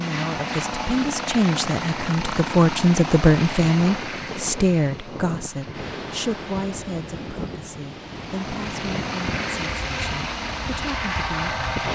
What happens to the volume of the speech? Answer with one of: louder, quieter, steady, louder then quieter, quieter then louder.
louder then quieter.